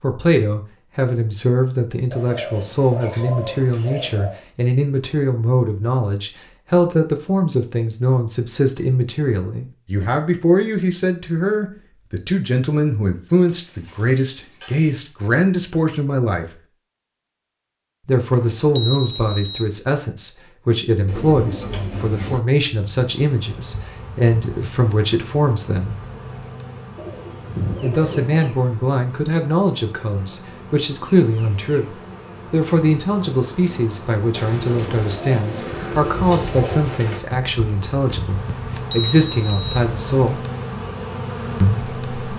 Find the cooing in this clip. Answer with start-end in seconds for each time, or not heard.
2.1-4.4, 13.4-15.1, 21.1-22.4, 26.9-28.2, 34.3-37.2.